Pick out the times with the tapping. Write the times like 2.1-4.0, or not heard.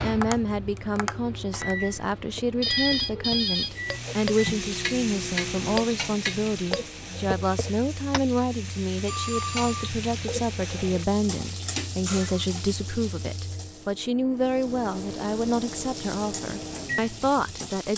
0.2-8.2.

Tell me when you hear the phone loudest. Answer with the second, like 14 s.
3 s.